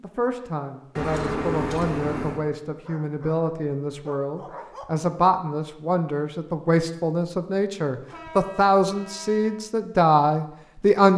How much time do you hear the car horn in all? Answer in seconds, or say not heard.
3 s.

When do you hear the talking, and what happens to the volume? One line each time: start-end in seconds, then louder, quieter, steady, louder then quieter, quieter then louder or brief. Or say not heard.
0.0-11.1 louder.